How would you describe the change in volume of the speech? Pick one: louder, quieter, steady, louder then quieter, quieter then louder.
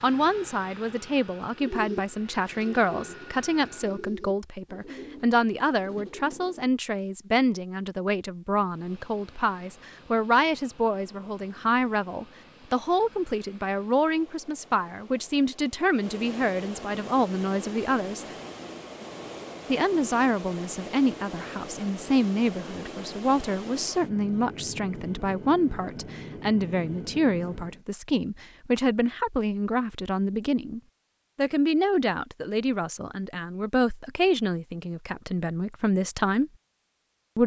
steady.